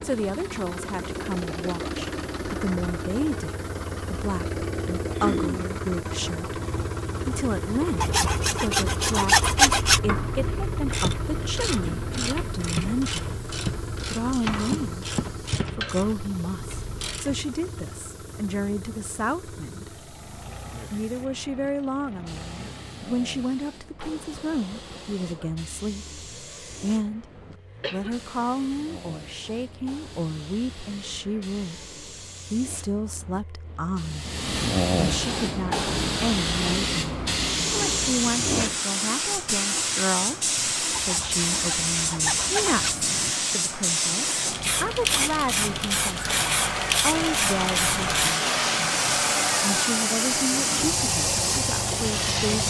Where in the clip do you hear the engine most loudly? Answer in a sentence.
The volume of the engine peaks at 49 seconds.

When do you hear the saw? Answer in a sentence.
The saw can be heard from 8.0 to 10.0 s and from 41.0 to 43.0 s.